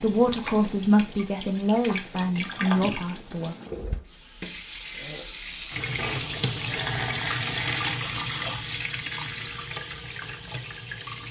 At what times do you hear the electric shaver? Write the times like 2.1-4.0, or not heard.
not heard.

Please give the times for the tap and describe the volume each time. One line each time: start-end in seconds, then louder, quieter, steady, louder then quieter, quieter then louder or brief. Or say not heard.
0.0-11.2 louder then quieter.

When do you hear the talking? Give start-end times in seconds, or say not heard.
0.0-3.5.